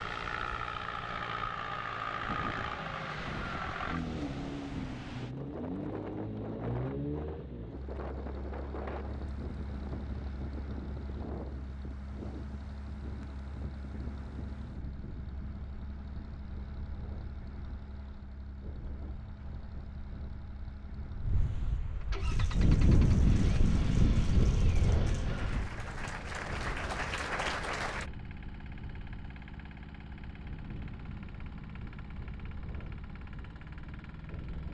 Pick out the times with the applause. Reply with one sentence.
You can hear the applause from 22.1 to 28.1 s.